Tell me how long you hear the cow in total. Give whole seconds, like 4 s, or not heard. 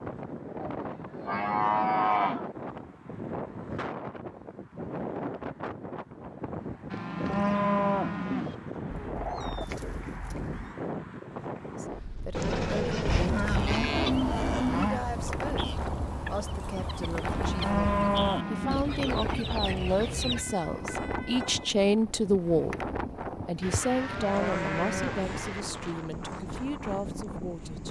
10 s.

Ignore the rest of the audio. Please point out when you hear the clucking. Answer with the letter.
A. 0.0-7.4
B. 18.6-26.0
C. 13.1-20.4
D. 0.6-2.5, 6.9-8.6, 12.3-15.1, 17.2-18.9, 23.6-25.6
C.